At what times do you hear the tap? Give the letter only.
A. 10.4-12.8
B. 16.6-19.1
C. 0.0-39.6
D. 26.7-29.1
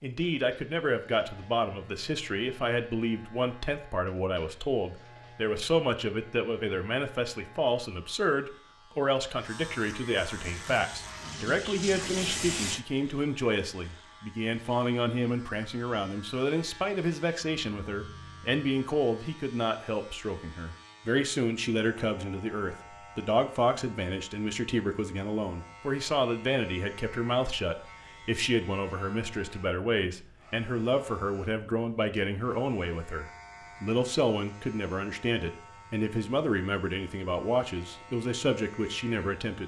A.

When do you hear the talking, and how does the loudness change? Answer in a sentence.
The talking can be heard from 0.0 to 39.6 s, at a steady volume.